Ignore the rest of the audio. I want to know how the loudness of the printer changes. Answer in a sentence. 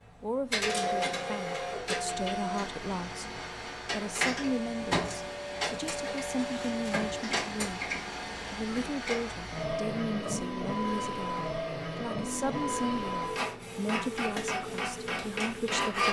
The volume of the printer stays about the same.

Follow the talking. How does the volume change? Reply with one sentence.
The volume of the talking stays about the same.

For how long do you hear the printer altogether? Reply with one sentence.
The printer can be heard for 16 seconds in total.